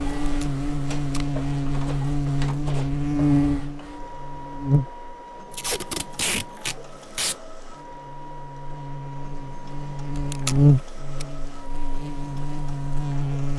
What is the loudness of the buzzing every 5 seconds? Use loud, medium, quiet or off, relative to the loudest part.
loud, quiet, loud.